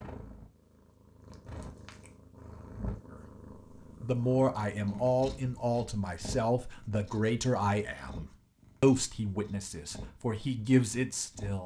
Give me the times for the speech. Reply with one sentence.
The speech can be heard from 4.0 to 11.6 s.